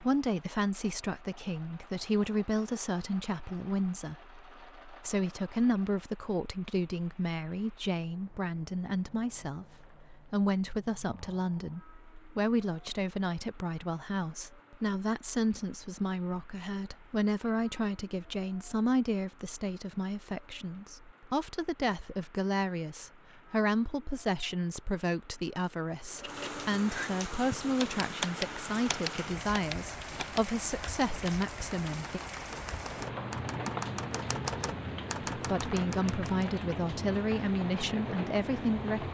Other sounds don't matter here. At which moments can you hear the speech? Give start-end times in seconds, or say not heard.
0.0-32.2, 35.4-39.0.